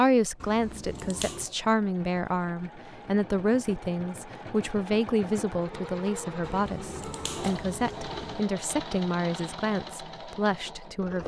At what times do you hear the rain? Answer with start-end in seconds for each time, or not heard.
not heard.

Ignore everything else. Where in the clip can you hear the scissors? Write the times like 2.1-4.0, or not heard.
0.4-1.5, 6.4-8.4.